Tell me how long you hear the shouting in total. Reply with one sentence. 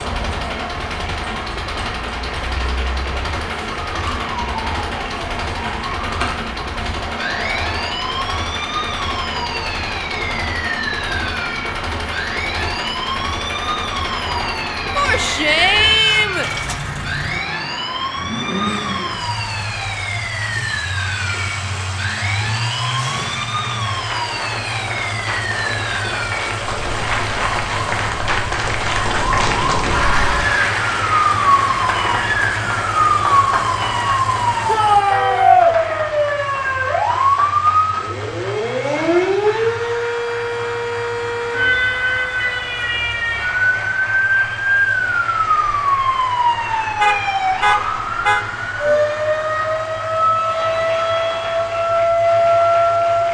The shouting can be heard for 3 seconds in total.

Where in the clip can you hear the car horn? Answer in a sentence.
You can hear the car horn from 47.0 to 48.5 s.